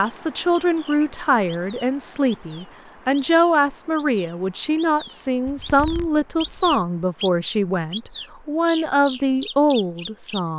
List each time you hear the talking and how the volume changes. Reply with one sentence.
The talking can be heard from 0.0 to 10.5 s, at a steady volume.